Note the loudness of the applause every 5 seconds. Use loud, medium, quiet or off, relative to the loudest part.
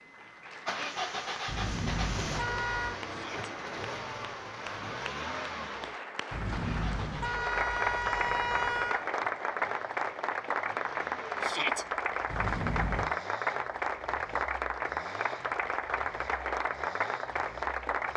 quiet, loud, loud, loud.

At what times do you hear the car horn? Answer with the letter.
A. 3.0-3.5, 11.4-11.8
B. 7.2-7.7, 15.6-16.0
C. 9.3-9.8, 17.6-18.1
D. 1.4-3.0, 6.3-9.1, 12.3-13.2
D.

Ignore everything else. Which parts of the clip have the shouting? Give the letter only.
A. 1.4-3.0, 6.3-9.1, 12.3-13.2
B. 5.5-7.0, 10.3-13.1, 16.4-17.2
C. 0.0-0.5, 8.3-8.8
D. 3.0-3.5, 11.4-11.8
D.